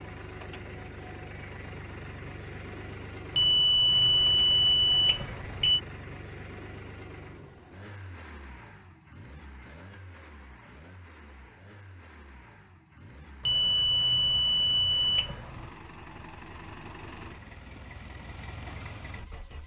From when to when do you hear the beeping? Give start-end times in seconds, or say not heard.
3.4-5.8, 13.4-15.7.